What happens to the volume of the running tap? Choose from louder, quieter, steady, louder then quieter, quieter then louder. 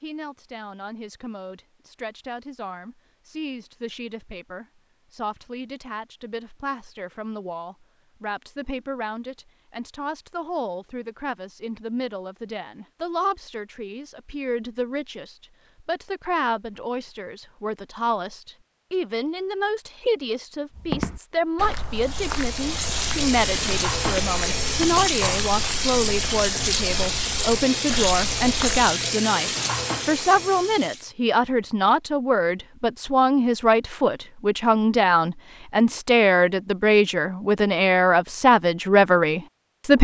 steady.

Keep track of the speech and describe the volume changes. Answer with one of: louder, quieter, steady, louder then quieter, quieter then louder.
louder.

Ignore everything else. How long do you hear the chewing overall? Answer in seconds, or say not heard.
not heard.